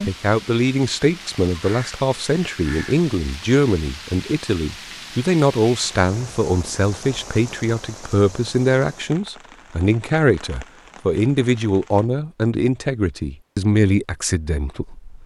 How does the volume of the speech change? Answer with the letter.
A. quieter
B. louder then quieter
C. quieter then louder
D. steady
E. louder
D.